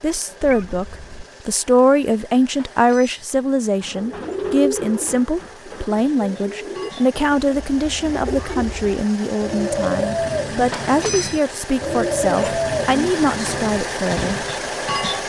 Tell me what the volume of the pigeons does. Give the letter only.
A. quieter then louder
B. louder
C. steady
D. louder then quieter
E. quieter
A.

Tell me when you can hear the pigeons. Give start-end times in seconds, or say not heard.
3.8-14.5.